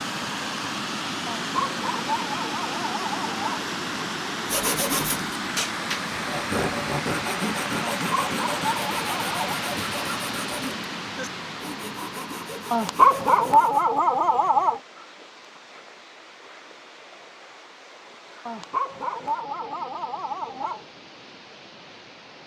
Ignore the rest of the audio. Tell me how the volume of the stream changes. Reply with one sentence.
The loudness of the stream goes down.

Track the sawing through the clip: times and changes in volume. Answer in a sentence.
The sawing can be heard from 4.5 to 13.8 s, getting quieter.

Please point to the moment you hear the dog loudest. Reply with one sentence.
The loudest moment of the dog is at 13 seconds.